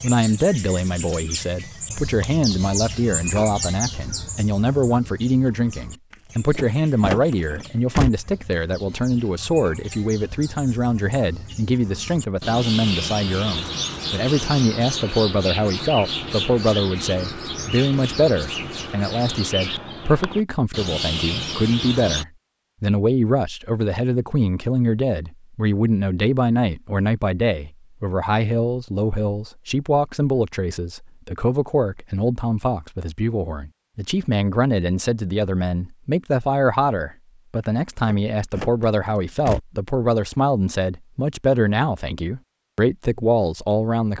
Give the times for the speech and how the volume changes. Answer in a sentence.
The speech can be heard from 0.0 to 44.1 s, at a steady volume.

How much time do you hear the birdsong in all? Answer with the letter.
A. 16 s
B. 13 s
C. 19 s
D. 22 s
D.